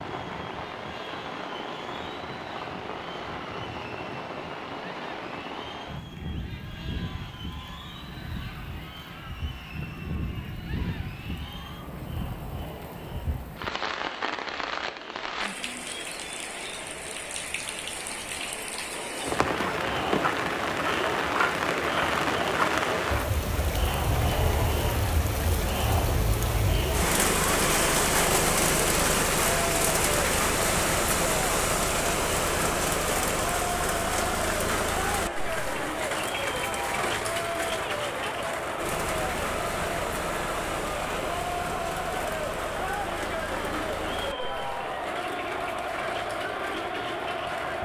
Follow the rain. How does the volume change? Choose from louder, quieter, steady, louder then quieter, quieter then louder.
louder then quieter.